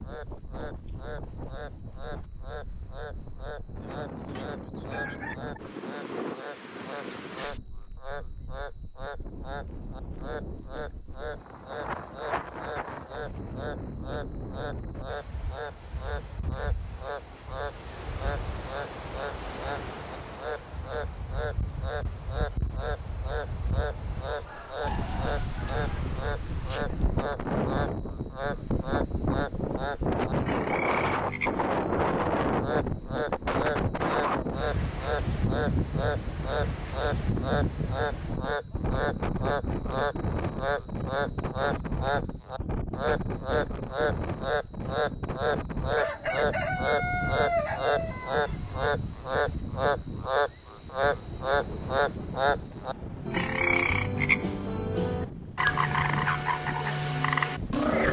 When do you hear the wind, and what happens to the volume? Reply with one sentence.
The wind can be heard from 0.0 to 58.0 s, getting louder then quieter.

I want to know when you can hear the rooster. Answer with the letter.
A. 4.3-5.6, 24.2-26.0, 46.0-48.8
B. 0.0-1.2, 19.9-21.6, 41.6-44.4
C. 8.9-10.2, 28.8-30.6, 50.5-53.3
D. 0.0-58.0
A.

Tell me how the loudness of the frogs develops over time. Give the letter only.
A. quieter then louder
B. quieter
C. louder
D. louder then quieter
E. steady
C.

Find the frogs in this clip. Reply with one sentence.
The frogs can be heard from 0.0 to 58.0 s.